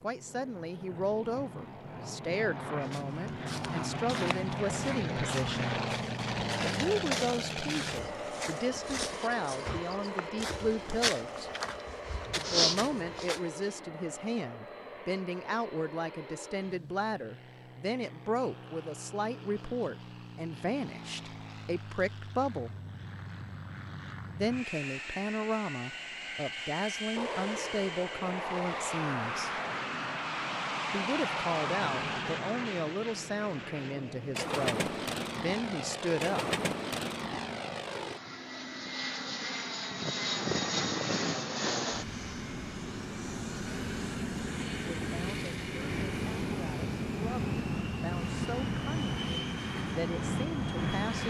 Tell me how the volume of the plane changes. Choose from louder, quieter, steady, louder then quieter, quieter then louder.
quieter then louder.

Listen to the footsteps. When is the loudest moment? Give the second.
13 s.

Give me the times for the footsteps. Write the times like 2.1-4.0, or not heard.
2.8-13.4.